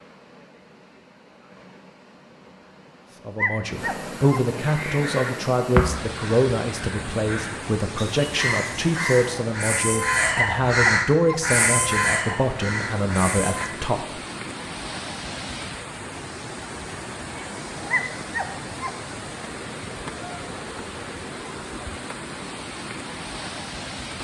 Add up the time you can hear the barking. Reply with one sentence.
You can hear the barking for 3 seconds altogether.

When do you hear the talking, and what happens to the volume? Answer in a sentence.
The talking can be heard from 3.2 to 14.2 s, at a steady volume.